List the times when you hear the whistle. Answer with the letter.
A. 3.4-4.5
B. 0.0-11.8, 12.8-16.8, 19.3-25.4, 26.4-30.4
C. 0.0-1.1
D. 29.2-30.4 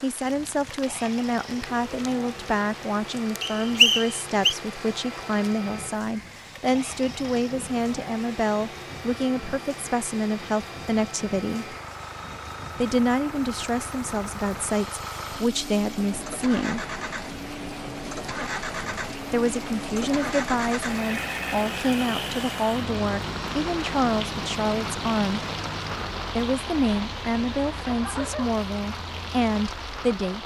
A.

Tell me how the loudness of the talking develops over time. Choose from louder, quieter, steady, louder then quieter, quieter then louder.
steady.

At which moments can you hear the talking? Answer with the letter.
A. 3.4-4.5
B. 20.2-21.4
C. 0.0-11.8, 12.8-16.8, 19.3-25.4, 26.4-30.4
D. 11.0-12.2
C.